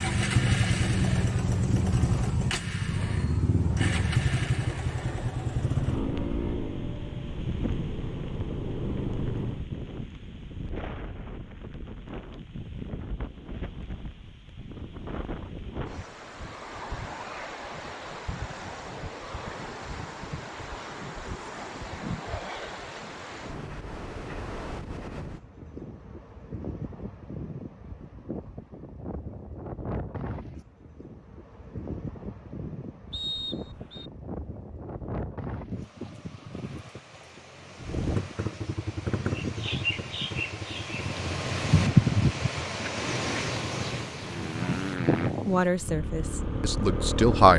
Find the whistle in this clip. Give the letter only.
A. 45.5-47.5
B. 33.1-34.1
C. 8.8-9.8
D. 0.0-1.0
B.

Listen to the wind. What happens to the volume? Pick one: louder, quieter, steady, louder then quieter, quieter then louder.
louder.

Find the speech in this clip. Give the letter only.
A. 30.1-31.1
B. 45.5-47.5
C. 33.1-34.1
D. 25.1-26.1
B.